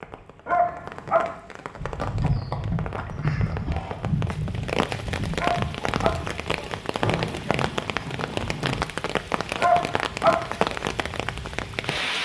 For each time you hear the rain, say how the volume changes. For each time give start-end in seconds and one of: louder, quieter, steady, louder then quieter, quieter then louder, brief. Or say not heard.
0.0-12.2 louder.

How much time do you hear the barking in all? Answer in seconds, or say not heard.
3 s.